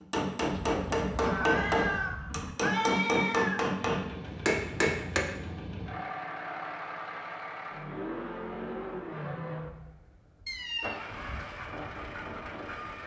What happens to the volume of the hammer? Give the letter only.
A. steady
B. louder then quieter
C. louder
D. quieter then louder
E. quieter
A.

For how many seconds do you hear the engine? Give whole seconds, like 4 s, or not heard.
9 s.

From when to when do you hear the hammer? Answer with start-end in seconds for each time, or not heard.
0.0-5.2.